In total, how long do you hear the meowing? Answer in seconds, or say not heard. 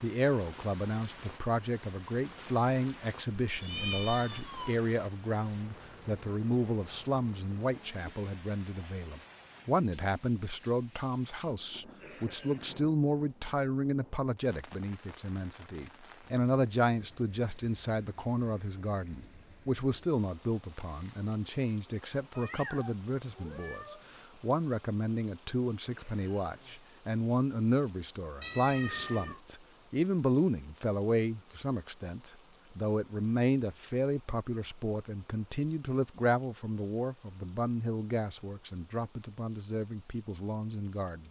4 s.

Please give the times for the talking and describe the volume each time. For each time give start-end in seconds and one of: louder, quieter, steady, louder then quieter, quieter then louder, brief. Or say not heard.
0.0-41.2 steady.